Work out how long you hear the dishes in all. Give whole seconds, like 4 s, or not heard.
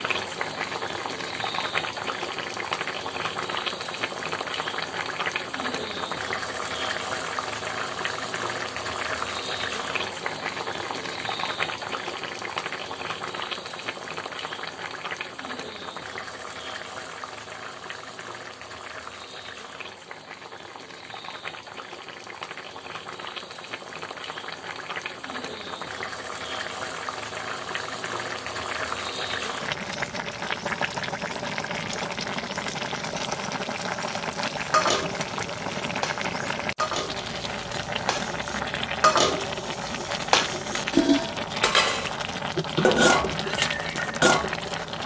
10 s.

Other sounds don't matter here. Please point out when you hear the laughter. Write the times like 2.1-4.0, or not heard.
not heard.